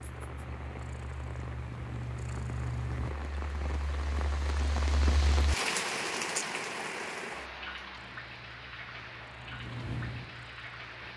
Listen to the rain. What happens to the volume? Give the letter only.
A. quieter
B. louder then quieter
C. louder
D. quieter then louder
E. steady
B.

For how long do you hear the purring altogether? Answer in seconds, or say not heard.
6 s.